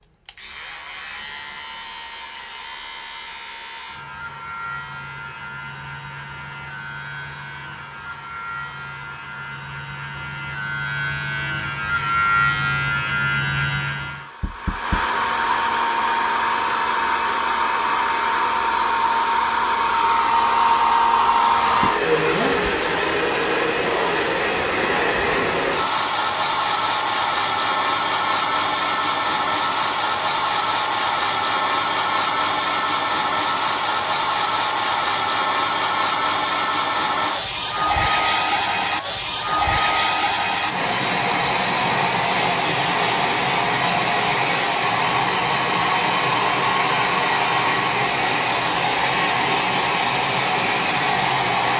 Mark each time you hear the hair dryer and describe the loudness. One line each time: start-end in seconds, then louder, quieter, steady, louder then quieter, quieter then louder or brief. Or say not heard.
0.0-51.7 louder.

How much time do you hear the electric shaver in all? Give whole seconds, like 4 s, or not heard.
14 s.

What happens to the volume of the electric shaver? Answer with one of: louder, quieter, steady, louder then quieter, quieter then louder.
louder.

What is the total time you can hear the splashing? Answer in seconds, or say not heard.
not heard.